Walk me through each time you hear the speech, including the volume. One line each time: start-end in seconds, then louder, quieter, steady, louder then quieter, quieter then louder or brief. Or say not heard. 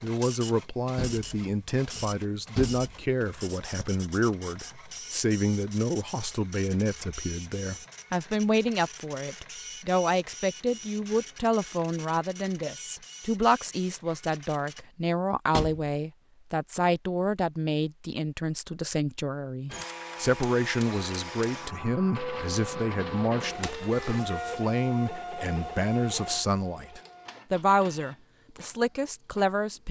0.0-29.8 steady.